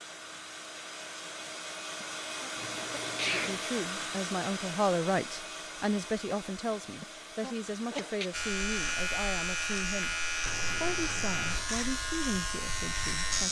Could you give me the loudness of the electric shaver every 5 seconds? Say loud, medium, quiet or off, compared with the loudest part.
off, loud, loud.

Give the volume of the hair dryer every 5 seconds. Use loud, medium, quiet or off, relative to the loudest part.
loud, medium, medium.